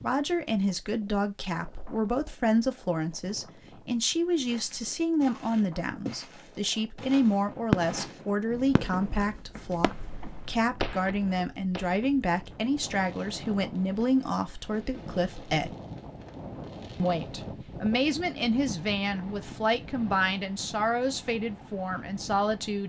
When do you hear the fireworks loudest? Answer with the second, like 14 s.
8 s.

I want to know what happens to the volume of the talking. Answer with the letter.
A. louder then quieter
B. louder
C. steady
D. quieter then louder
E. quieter
C.